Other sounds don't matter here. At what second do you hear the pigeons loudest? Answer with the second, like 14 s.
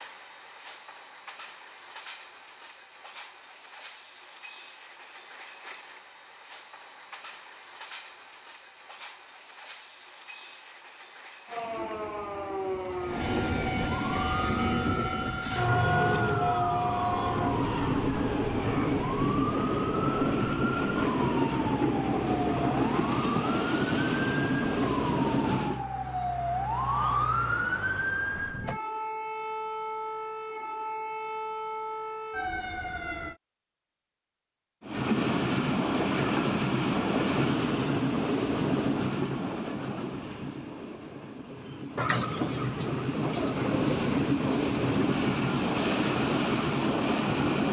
42 s.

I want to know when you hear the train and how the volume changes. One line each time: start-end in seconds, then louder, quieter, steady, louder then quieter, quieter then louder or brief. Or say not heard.
0.0-25.9 louder
34.8-47.6 quieter then louder.